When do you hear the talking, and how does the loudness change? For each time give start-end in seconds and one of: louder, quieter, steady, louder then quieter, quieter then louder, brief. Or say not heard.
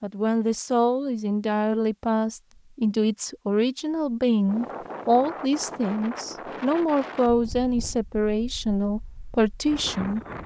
0.0-10.2 steady.